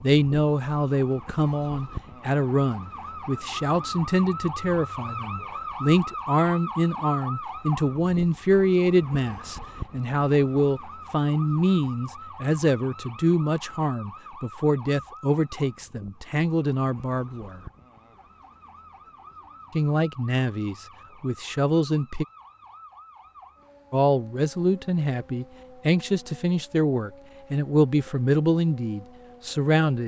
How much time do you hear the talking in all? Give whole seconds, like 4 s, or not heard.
26 s.